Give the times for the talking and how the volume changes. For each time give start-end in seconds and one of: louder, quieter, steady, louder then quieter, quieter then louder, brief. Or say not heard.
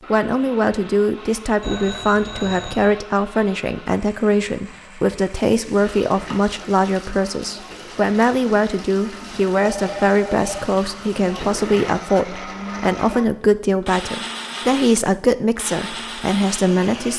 0.1-17.1 steady.